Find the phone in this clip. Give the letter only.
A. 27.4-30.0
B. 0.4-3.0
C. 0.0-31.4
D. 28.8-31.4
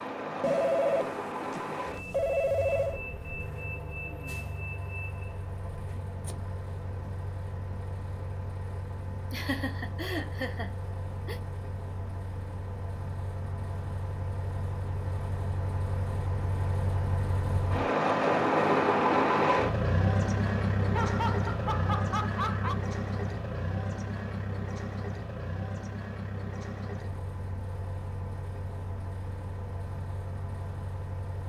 B.